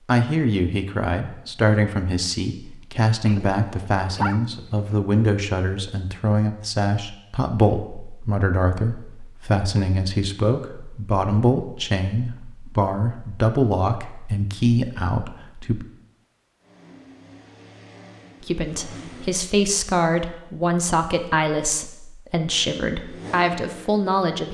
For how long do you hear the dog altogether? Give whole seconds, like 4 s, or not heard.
2 s.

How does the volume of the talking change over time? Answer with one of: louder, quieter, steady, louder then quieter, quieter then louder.
steady.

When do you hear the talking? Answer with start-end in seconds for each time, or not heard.
0.1-15.8, 18.4-24.4.